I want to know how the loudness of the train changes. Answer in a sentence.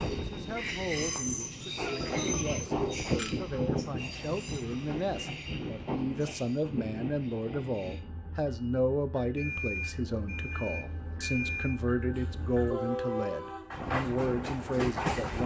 The loudness of the train goes down, then up.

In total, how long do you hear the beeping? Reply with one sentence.
The beeping can be heard for 4 seconds in total.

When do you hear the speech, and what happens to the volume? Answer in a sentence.
You can hear the speech from 0.1 to 15.4 s, getting louder.